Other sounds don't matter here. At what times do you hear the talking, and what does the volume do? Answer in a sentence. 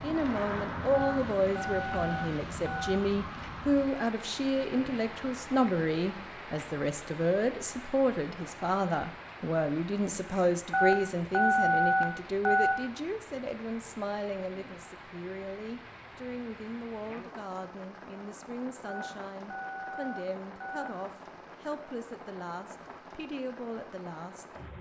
You can hear the talking from 0.0 to 24.4 s, getting quieter.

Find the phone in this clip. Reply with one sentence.
You can hear the phone from 0.9 to 3.0 s, from 10.7 to 12.8 s and from 18.9 to 20.9 s.